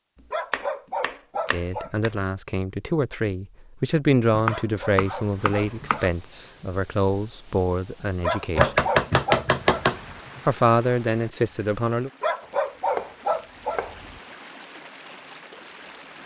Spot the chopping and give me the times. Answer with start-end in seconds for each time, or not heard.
0.5-2.1, 4.3-6.1, 8.6-10.4, 12.4-14.0.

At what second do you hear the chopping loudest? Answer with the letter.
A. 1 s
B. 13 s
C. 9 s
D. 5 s
C.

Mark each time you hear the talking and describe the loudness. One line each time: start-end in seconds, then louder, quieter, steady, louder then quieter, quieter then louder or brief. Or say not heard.
1.5-8.8 louder then quieter
10.4-12.1 brief.